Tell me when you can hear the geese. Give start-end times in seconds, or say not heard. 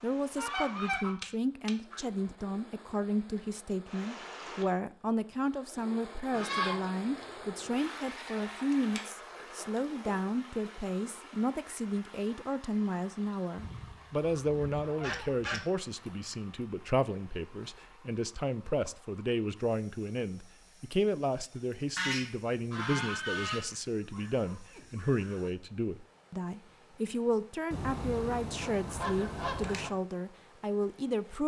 0.3-2.0, 6.3-6.9, 13.6-15.6, 21.9-23.6, 27.7-29.9.